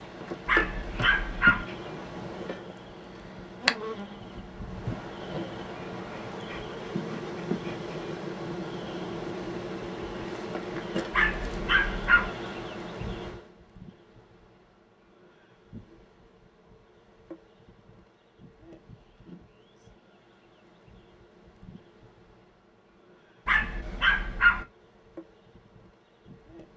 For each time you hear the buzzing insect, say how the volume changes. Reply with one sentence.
The buzzing insect can be heard from 0.0 to 26.7 s, getting quieter.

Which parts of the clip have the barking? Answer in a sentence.
You can hear the barking from 0.5 to 1.6 s, from 11.1 to 12.3 s and from 23.4 to 24.6 s.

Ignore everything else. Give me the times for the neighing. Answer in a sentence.
The neighing can't be heard in this clip.